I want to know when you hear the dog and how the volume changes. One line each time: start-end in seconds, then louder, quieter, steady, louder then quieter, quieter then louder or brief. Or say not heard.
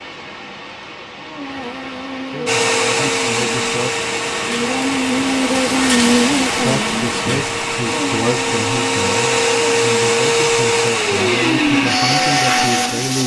not heard.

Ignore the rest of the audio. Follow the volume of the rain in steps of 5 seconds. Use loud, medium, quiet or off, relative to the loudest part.
medium, loud, medium.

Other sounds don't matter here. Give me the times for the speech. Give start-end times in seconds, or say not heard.
2.3-3.9, 6.5-13.2.